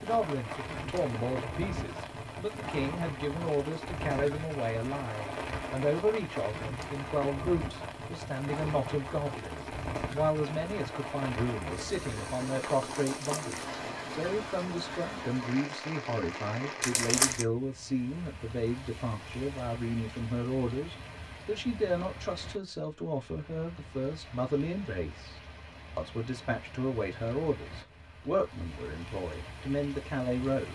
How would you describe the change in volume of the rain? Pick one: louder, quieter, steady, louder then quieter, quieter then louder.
quieter.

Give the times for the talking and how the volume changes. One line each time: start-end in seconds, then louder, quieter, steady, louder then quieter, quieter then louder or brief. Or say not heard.
0.0-30.7 steady.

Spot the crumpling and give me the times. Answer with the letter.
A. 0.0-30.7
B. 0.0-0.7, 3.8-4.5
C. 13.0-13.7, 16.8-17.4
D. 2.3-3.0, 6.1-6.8
C.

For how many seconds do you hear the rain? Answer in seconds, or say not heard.
31 s.